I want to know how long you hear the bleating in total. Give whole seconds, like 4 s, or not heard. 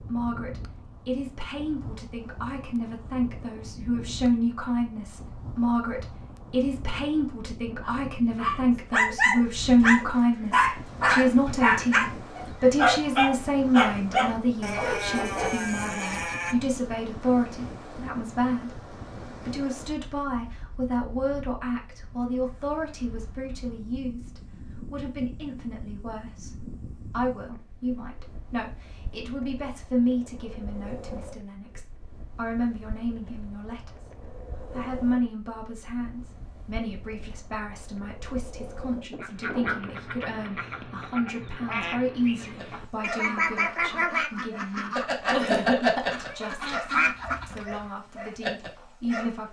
2 s.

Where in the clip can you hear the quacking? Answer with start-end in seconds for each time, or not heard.
39.2-47.9.